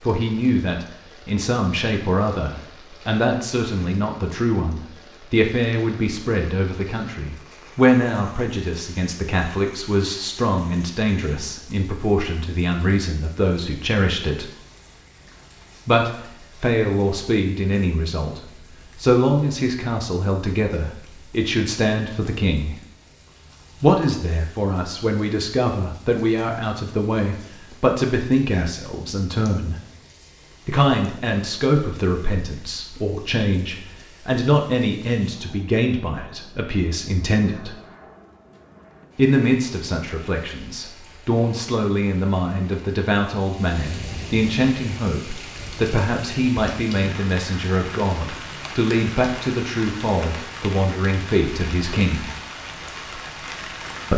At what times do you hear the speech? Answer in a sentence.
The speech can be heard from 0.0 to 14.5 s, from 15.8 to 22.8 s, from 23.8 to 29.8 s, from 30.6 to 37.8 s and from 39.1 to 52.3 s.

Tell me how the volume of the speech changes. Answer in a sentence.
The loudness of the speech stays about the same.